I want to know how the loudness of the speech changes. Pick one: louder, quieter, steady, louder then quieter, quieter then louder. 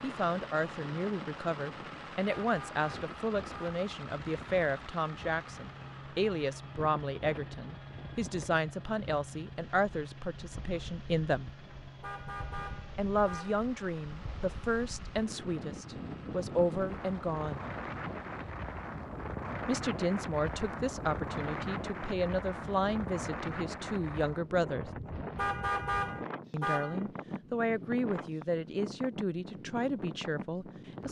steady.